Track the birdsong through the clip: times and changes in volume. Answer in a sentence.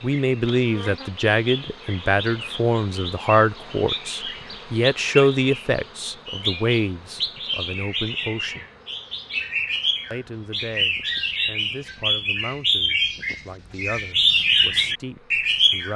The birdsong can be heard from 0.0 to 15.9 s, getting louder.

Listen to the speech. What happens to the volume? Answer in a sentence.
The loudness of the speech goes down.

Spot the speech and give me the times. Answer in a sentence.
You can hear the speech from 0.0 to 8.7 s and from 10.1 to 15.9 s.